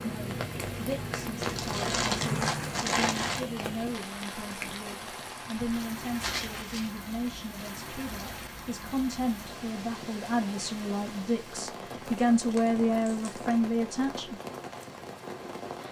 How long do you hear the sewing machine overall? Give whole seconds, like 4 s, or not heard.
3 s.